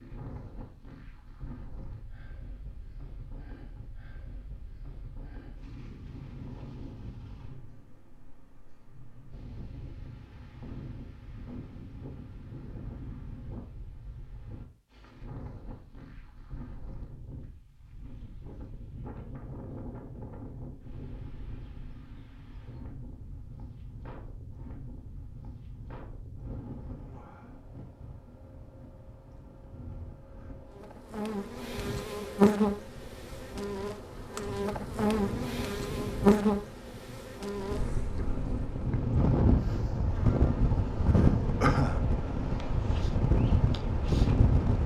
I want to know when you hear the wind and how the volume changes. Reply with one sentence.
The wind can be heard from 0.0 to 44.8 s, getting louder.